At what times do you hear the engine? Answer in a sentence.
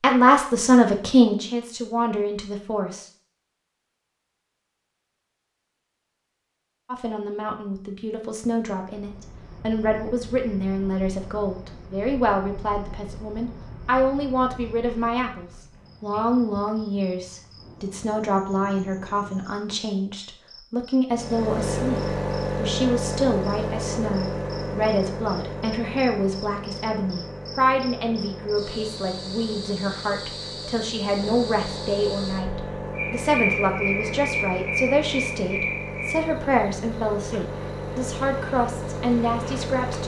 The engine can be heard from 21.1 to 40.0 s.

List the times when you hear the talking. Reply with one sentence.
The talking can be heard from 0.0 to 3.0 s and from 6.8 to 40.0 s.